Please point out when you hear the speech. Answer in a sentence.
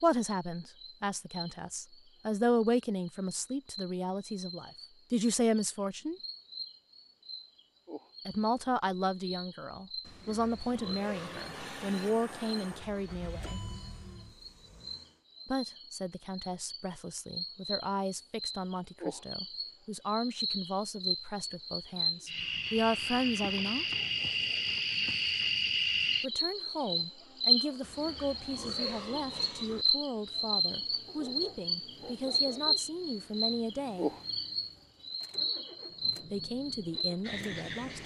You can hear the speech from 0.0 to 6.2 s, from 8.2 to 13.6 s, from 15.4 to 23.9 s, from 26.2 to 34.1 s and from 36.2 to 38.0 s.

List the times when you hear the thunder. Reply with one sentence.
The thunder can't be heard in this clip.